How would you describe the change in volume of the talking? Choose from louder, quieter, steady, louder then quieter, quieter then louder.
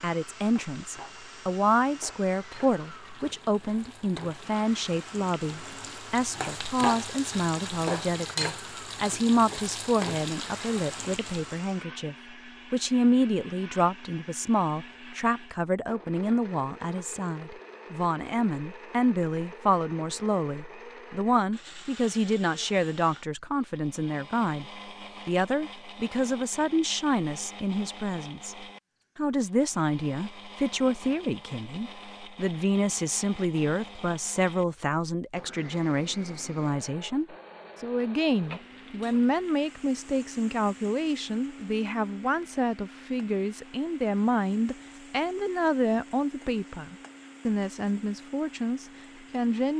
steady.